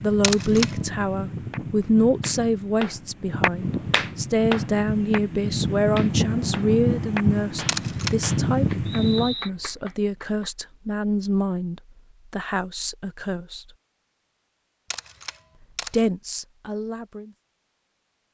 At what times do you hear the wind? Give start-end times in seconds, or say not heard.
0.0-9.3.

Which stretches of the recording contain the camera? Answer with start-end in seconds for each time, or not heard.
0.2-0.8, 7.7-8.2, 14.9-16.1.